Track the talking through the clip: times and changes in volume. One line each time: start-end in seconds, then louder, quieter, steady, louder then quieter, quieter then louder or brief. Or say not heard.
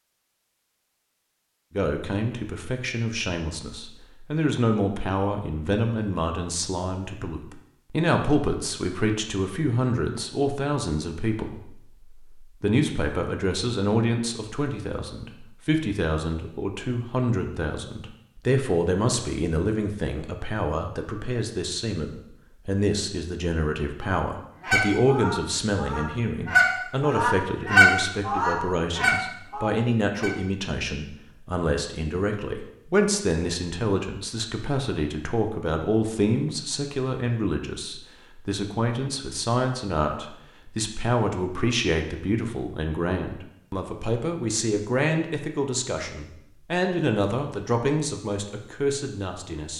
1.7-49.7 steady.